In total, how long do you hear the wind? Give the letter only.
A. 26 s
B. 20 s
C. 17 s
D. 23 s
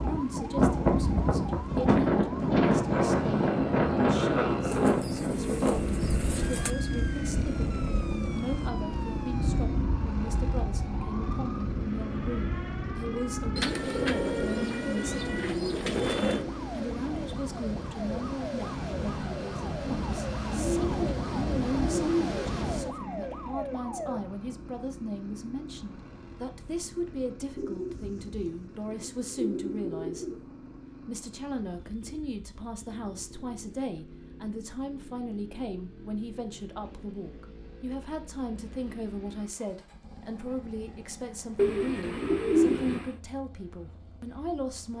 D.